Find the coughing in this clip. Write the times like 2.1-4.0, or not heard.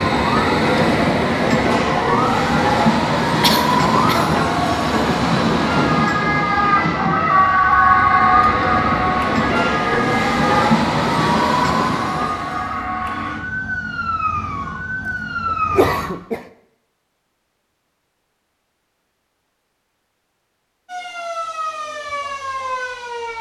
3.4-4.4, 15.1-16.4.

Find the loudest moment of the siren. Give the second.
8 s.